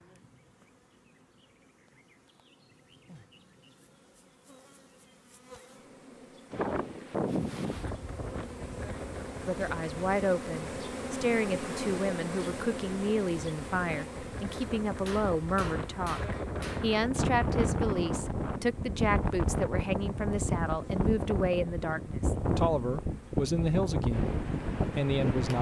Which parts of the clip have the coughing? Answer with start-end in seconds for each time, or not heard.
not heard.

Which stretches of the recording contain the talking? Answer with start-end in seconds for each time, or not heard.
9.4-25.5.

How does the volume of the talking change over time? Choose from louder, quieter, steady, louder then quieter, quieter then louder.
steady.